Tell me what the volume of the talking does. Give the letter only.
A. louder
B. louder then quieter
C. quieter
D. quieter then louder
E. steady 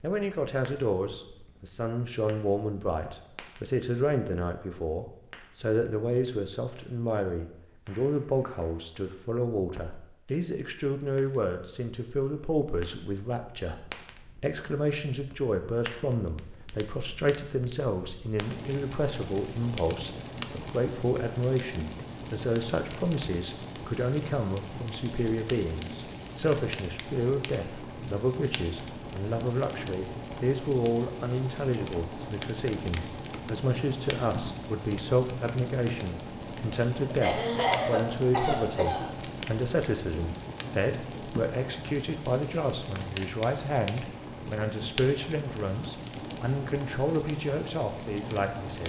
E.